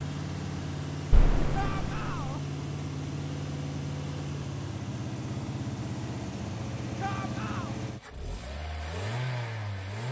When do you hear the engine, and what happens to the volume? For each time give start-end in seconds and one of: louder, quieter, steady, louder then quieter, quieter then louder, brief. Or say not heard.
0.0-10.0 steady.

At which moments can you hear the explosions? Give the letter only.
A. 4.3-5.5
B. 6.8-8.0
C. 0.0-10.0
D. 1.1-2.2
D.